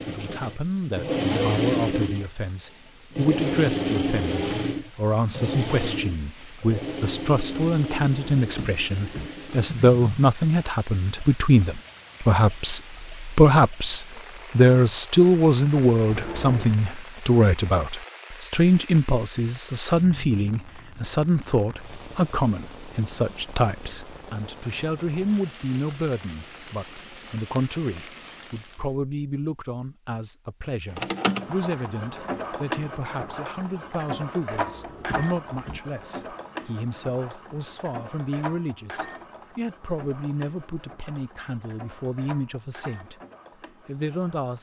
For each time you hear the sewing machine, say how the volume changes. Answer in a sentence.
You can hear the sewing machine from 0.0 to 9.8 s, getting quieter; and from 30.9 to 44.5 s, getting quieter.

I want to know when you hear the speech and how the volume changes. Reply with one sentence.
You can hear the speech from 0.1 to 43.1 s, getting louder then quieter; and briefly from 43.9 to 44.5 s.